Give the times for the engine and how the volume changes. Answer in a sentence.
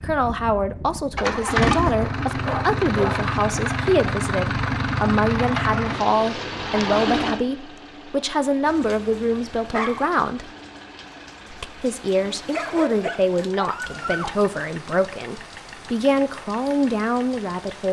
You can hear the engine from 0.0 to 17.8 s, getting quieter.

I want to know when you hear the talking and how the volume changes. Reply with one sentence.
You can hear the talking from 0.0 to 10.5 s, at a steady volume; and from 11.5 to 17.8 s, at a steady volume.